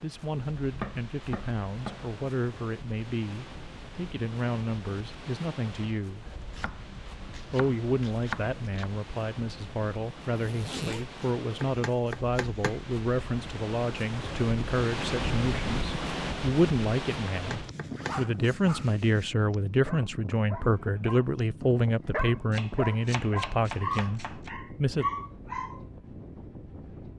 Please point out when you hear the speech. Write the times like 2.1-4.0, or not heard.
0.0-6.2, 7.5-25.1.